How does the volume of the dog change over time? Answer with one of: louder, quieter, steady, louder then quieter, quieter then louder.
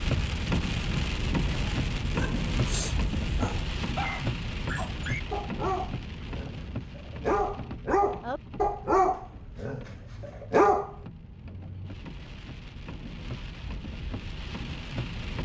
louder.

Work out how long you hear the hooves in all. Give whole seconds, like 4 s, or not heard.
not heard.